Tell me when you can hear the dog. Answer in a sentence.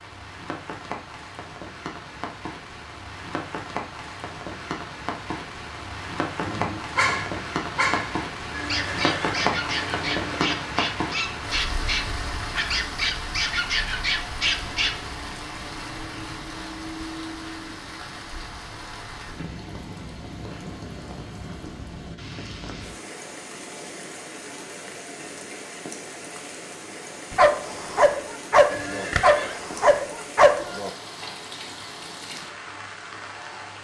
You can hear the dog from 6.4 to 14.9 s and from 27.3 to 31.2 s.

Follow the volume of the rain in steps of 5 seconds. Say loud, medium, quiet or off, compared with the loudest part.
medium, loud, loud, medium, medium, medium, medium.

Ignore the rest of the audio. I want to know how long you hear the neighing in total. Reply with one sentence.
The neighing can be heard for 3 seconds in total.